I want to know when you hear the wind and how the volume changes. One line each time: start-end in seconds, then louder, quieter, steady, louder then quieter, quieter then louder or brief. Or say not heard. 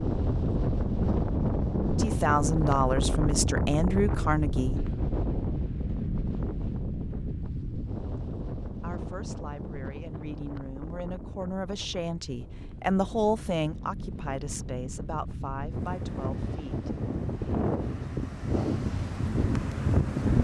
0.0-20.3 quieter then louder.